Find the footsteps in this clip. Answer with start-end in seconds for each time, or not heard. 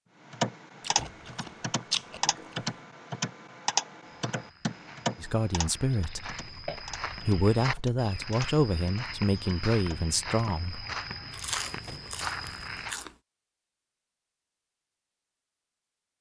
4.2-12.9.